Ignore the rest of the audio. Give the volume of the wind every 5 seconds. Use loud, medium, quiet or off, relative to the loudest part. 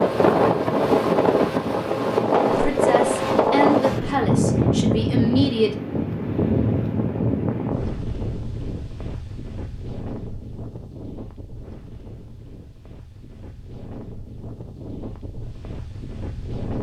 loud, medium, quiet, quiet.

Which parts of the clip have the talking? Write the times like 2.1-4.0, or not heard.
2.5-5.7.